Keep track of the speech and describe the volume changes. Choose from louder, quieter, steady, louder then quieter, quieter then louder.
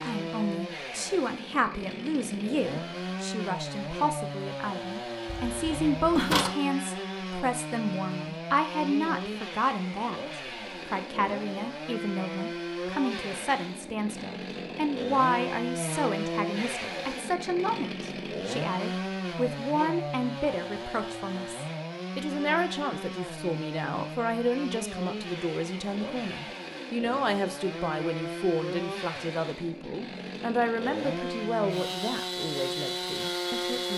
steady.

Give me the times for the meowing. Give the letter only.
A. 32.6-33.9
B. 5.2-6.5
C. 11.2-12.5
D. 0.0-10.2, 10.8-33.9
B.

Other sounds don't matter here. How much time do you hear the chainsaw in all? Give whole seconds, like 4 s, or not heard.
34 s.